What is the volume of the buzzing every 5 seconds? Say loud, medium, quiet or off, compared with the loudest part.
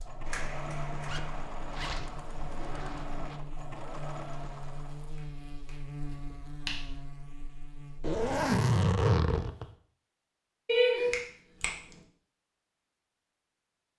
loud, loud, off.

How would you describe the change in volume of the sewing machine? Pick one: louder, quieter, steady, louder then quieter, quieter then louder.
steady.